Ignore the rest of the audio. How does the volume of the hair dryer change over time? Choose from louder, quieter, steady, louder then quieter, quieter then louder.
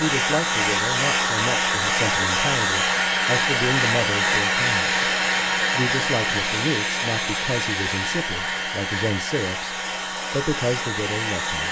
quieter.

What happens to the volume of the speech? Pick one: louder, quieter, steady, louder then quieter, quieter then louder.
steady.